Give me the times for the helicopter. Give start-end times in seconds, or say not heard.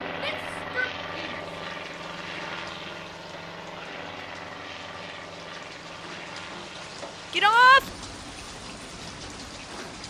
0.0-10.0.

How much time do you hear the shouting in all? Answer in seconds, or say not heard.
2 s.